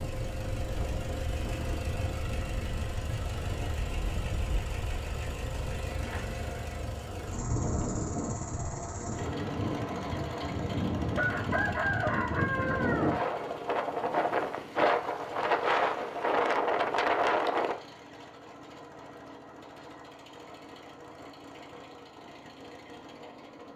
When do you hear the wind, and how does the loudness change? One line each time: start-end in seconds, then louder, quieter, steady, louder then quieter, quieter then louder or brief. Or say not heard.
0.0-17.8 louder.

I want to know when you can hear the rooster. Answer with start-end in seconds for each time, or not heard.
11.2-13.2.